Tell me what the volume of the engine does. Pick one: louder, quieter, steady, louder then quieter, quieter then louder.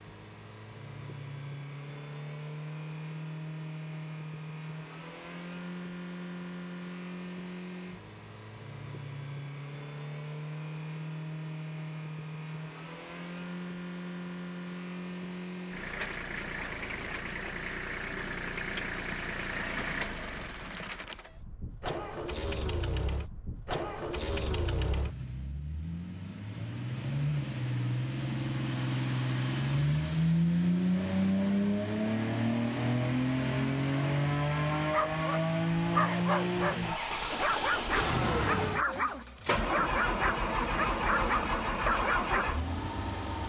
louder.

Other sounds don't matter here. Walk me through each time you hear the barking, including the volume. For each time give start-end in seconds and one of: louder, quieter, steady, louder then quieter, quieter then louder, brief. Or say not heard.
34.9-42.5 steady.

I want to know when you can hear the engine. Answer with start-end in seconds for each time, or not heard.
0.0-43.4.